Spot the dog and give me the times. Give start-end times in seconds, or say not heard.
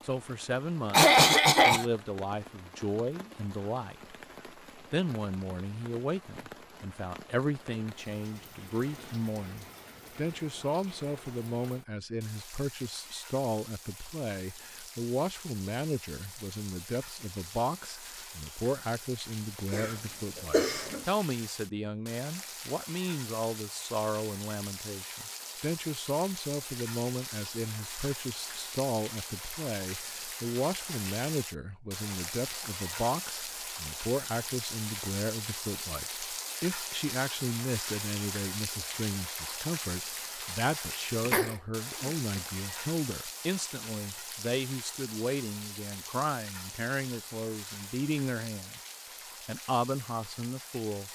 not heard.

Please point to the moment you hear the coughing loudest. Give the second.
1 s.